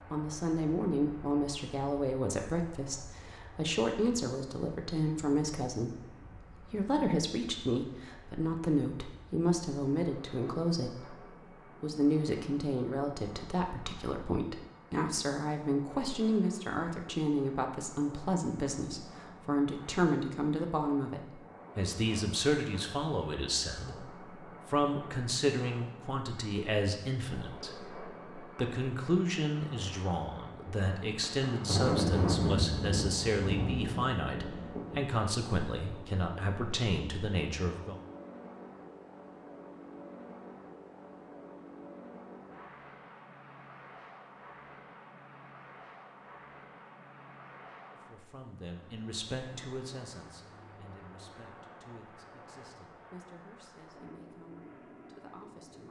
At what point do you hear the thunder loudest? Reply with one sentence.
The volume of the thunder peaks at 32 seconds.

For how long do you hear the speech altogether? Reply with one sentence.
The speech can be heard for 46 seconds in total.